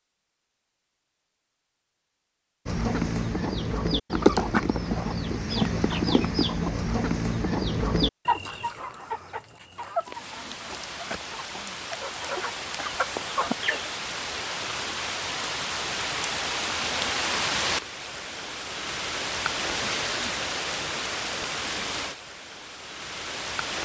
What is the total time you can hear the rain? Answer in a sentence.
You can hear the rain for 14 seconds altogether.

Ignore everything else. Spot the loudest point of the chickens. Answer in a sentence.
The volume of the chickens peaks at 4 seconds.